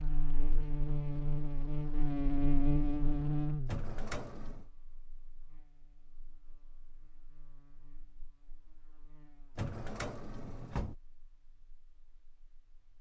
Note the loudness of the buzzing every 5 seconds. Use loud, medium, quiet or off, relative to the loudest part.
loud, quiet, quiet.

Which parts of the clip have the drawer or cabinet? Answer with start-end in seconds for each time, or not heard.
3.6-4.7, 9.6-10.9.